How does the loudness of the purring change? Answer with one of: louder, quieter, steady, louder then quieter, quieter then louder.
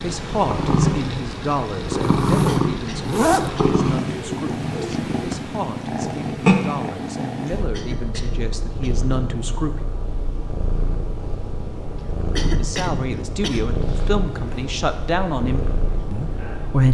quieter.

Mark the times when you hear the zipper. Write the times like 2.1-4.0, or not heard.
1.9-3.5.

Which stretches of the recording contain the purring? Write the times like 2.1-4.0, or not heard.
0.0-16.8.